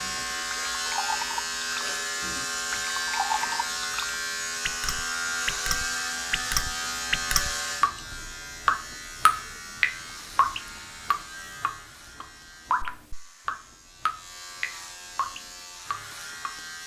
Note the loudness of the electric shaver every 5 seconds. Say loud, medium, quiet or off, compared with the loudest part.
loud, loud, quiet, medium.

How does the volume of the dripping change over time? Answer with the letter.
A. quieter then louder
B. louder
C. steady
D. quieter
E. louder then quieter
E.